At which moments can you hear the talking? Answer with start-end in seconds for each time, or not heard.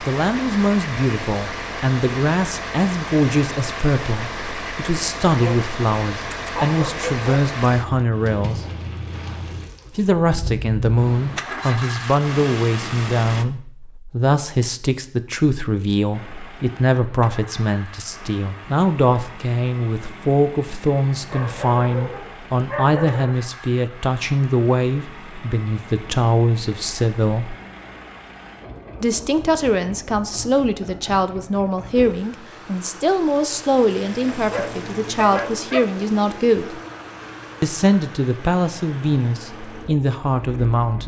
0.0-8.7, 9.9-27.6, 29.0-36.8, 37.6-41.0.